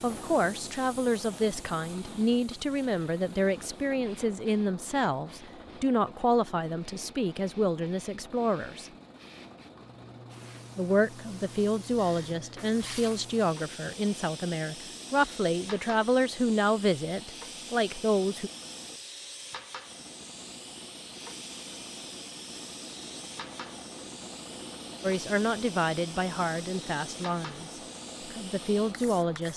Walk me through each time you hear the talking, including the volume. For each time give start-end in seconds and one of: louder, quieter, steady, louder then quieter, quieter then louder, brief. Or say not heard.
0.0-8.9 steady
10.8-18.5 steady
25.0-27.7 brief
28.3-29.5 brief.